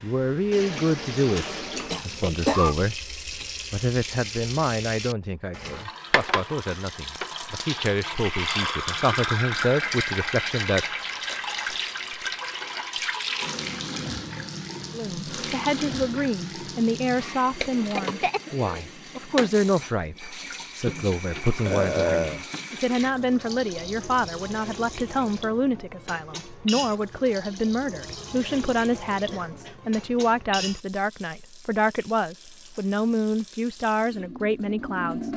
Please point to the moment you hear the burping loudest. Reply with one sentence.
The loudest moment of the burping is at 22 seconds.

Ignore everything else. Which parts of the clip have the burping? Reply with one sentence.
You can hear the burping from 1.4 to 2.3 s and from 21.6 to 22.4 s.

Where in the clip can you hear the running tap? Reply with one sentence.
The running tap can be heard from 0.0 to 35.3 s.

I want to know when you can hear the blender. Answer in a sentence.
You can't hear the blender here.